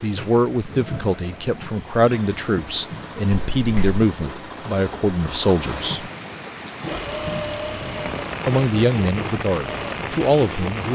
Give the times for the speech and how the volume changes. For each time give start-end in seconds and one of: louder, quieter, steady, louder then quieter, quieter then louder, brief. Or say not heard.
0.0-6.1 steady
8.4-10.8 brief.